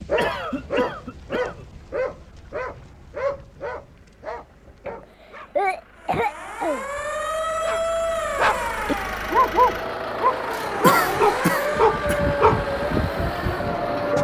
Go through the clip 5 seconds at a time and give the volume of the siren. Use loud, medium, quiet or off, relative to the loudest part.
off, loud, loud.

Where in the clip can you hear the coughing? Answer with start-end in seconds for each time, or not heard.
0.1-1.8, 5.0-6.8, 10.8-12.2.